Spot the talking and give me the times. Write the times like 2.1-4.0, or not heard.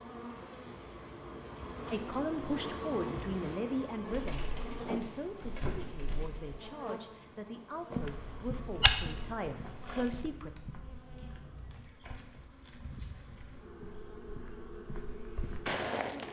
1.9-10.5.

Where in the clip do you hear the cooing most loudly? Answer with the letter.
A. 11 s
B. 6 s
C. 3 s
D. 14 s
B.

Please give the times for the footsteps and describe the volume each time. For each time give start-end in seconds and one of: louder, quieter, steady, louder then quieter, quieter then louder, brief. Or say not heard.
8.0-16.2 quieter then louder.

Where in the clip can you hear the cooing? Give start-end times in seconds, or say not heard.
4.0-6.7.